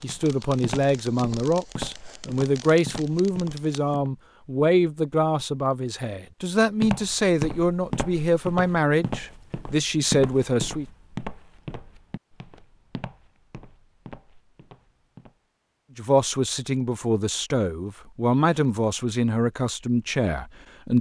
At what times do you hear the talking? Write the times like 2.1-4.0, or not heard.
0.0-10.8, 15.9-20.9.